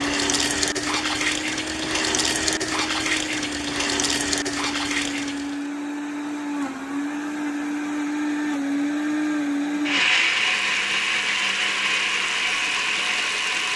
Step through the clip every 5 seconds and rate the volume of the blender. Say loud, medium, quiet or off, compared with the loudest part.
medium, loud, loud.